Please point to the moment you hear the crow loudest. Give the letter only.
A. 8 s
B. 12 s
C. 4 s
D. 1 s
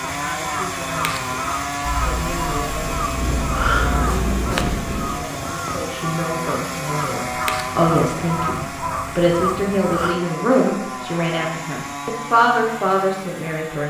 C.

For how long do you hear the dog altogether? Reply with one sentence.
The dog can't be heard in this clip.